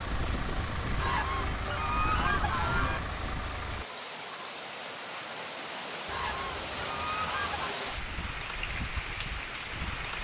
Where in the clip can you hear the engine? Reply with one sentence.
You can hear the engine from 0.0 to 4.0 s.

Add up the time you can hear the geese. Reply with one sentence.
The geese can be heard for 4 seconds in total.